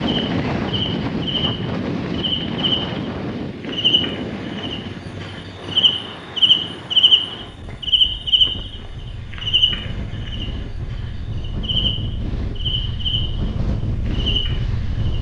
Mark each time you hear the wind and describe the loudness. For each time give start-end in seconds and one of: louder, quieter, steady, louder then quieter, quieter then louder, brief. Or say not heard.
0.0-15.1 quieter then louder.